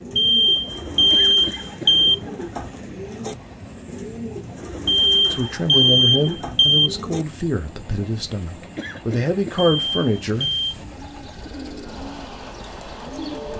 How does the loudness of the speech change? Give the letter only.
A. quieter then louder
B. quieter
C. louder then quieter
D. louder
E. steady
A.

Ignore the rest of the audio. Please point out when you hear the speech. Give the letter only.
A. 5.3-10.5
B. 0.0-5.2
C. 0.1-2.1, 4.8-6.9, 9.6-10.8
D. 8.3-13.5
A.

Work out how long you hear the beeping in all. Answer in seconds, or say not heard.
5 s.